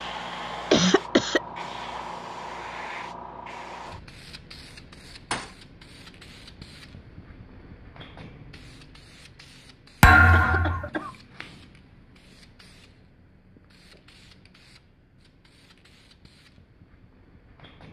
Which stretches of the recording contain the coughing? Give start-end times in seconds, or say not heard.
0.7-1.4, 10.3-11.2.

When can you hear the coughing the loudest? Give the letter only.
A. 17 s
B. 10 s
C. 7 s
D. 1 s
D.